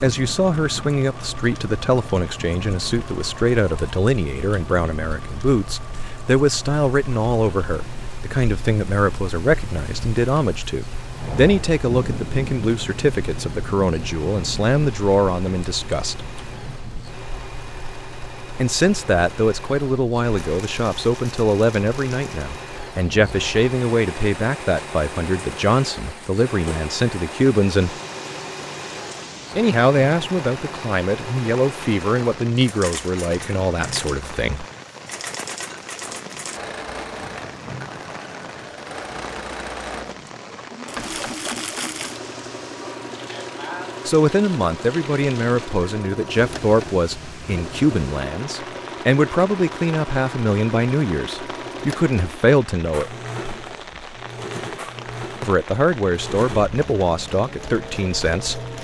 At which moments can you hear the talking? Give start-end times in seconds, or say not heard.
0.0-16.2, 18.6-27.9, 29.6-34.6, 44.0-53.1, 55.4-58.6.